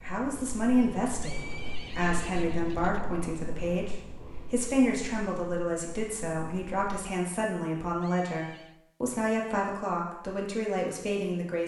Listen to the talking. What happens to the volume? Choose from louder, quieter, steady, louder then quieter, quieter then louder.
steady.